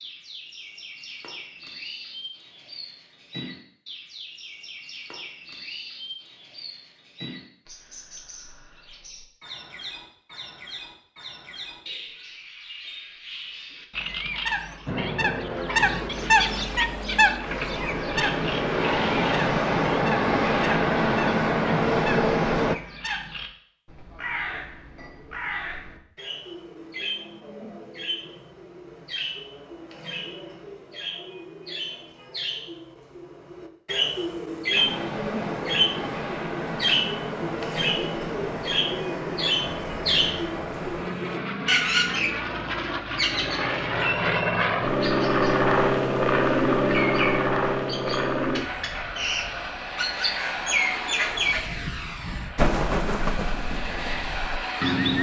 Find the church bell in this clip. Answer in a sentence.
The church bell can't be heard in this clip.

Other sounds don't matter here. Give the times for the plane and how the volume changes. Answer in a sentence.
You can hear the plane from 14.8 to 22.8 s, getting louder; and from 34.7 to 55.1 s, getting louder then quieter.